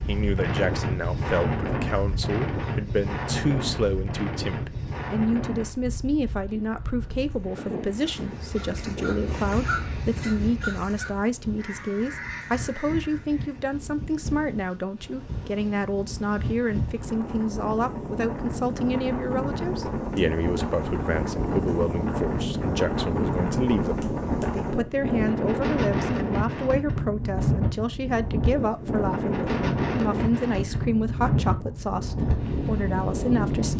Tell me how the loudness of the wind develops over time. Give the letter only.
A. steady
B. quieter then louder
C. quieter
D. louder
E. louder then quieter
B.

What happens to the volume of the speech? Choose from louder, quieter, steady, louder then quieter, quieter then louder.
steady.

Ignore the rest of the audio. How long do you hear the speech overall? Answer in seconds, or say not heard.
34 s.